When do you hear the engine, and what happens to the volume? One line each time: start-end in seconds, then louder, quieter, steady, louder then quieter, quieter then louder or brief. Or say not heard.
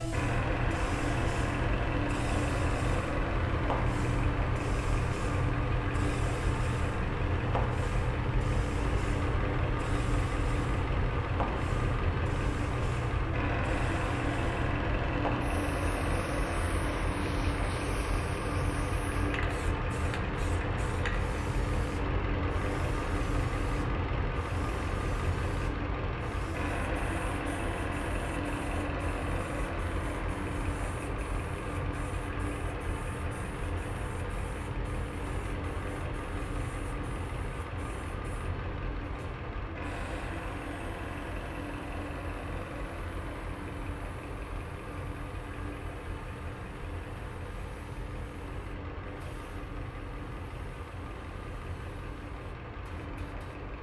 0.0-53.7 quieter.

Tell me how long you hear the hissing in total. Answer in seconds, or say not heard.
54 s.